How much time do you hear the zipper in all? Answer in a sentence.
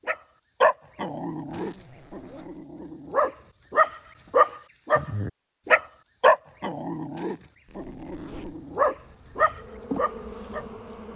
The zipper can be heard for 2 seconds in total.